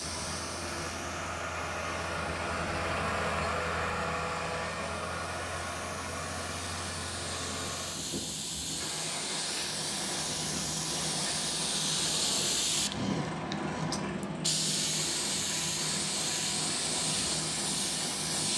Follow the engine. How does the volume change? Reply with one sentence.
The loudness of the engine goes down.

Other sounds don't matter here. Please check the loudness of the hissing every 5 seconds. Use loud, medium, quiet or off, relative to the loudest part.
quiet, medium, loud, loud.